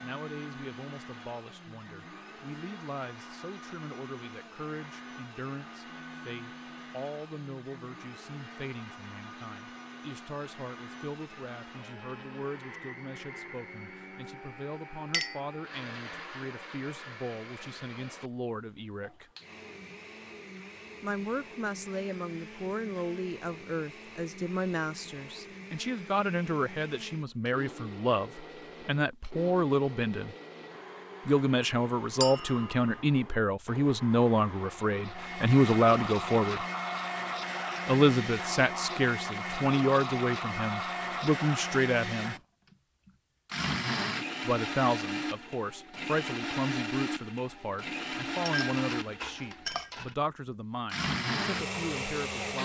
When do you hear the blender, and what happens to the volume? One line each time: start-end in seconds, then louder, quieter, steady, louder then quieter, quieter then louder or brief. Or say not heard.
0.0-52.6 louder.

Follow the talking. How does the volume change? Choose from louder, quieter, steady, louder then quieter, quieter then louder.
louder then quieter.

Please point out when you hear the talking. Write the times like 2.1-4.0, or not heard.
0.0-19.2, 21.0-30.4, 31.2-36.6, 37.9-42.4, 44.5-52.6.